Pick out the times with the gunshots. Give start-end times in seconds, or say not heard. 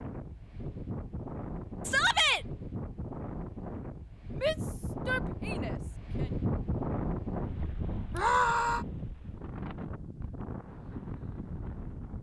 not heard.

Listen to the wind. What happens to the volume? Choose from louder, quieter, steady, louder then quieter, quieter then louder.
louder then quieter.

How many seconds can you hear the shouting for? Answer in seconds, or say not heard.
3 s.